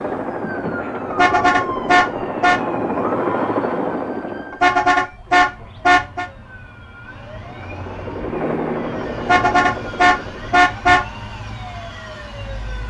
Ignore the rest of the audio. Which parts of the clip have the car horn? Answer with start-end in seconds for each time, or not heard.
1.1-2.6, 4.5-6.2, 9.2-11.1.